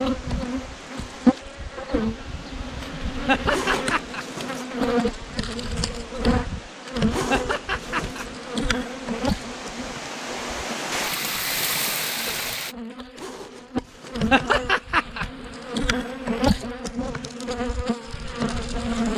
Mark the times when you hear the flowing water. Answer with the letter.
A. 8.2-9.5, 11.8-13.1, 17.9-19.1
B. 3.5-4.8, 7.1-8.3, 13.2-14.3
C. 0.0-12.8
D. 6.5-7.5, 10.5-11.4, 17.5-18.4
C.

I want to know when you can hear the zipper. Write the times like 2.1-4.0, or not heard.
3.5-4.8, 7.1-8.3, 13.2-14.3.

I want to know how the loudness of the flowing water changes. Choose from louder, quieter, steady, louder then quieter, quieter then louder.
louder.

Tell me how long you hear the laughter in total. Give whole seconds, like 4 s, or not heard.
3 s.